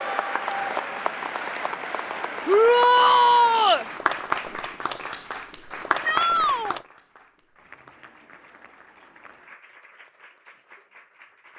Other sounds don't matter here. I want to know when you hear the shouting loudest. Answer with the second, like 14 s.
3 s.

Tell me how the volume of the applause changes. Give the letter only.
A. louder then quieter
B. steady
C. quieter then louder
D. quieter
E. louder
D.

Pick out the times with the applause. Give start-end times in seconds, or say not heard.
0.0-11.5.